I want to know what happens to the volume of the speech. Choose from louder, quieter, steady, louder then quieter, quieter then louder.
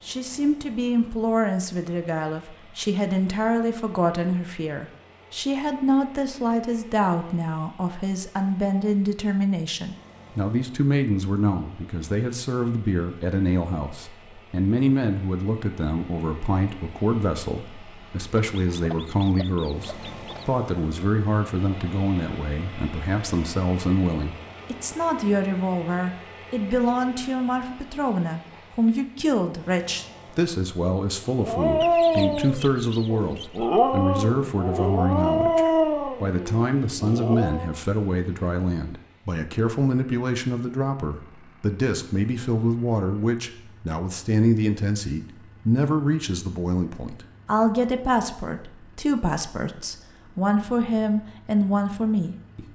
steady.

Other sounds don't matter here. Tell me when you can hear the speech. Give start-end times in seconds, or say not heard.
0.1-52.6.